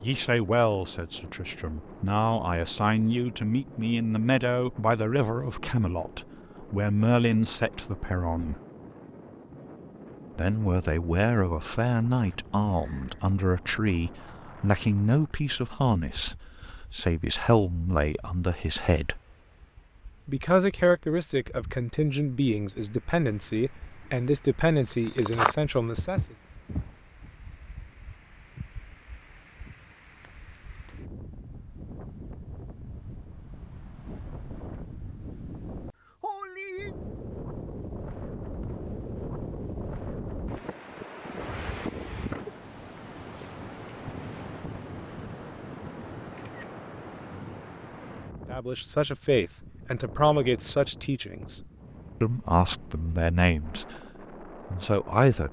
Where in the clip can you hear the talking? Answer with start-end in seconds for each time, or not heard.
0.0-8.6, 10.3-19.2, 20.2-26.2, 48.5-54.0, 54.7-55.4.